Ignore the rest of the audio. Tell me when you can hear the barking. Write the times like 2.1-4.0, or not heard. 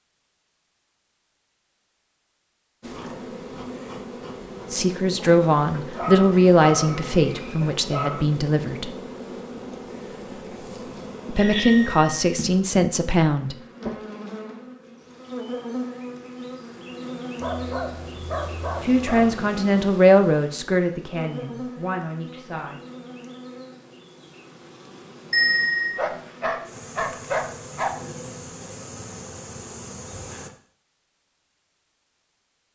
5.5-8.2, 17.4-19.4, 25.9-27.9.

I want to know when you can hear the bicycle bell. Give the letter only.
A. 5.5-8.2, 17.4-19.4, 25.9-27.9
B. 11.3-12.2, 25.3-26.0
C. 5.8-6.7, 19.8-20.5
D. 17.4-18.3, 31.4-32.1
B.